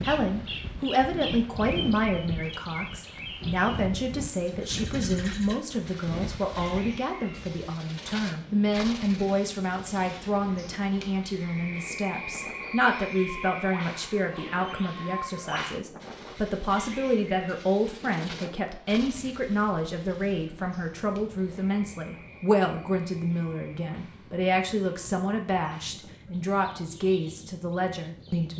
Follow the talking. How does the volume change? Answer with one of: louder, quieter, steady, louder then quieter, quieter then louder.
steady.